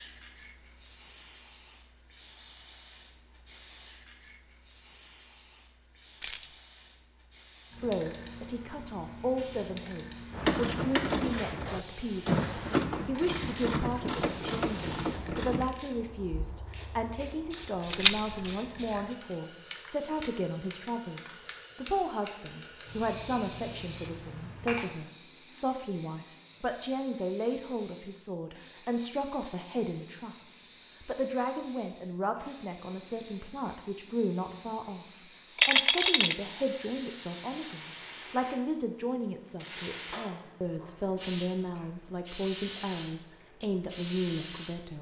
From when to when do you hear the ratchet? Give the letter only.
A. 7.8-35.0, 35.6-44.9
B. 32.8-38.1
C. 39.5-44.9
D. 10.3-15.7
D.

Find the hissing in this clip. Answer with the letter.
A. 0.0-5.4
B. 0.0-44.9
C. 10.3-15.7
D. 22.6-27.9
B.